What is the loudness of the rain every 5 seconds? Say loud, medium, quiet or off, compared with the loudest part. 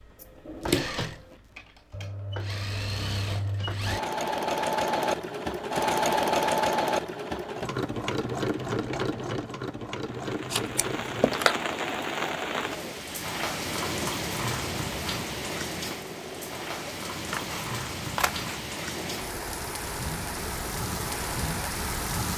off, off, loud, loud, loud.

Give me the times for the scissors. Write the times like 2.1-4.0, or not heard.
0.2-1.4, 10.5-11.6, 17.2-18.6.